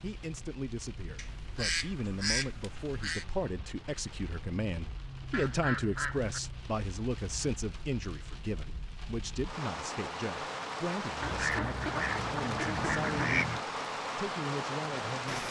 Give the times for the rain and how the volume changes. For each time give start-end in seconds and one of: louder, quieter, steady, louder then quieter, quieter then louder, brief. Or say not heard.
0.0-15.4 louder.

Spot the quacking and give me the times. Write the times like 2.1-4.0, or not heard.
1.1-3.2, 5.3-6.4, 11.2-13.7.